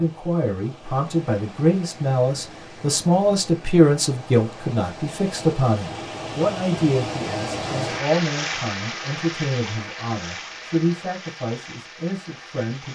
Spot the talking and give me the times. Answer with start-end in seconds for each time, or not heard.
0.0-12.9.